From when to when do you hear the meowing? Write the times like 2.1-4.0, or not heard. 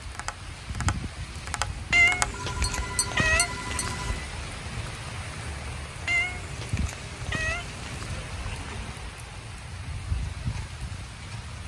1.9-4.2, 6.0-8.2.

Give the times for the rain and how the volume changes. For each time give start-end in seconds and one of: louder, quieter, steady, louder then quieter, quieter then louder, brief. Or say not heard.
0.0-11.6 steady.